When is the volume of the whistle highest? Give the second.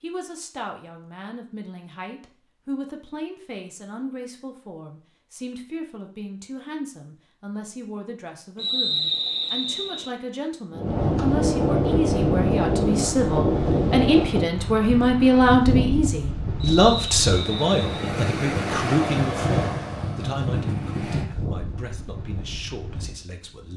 9 s.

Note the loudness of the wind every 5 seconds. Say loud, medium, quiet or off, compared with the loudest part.
off, off, loud, medium, medium.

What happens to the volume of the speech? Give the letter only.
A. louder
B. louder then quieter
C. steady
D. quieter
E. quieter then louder
B.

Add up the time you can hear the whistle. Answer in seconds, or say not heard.
3 s.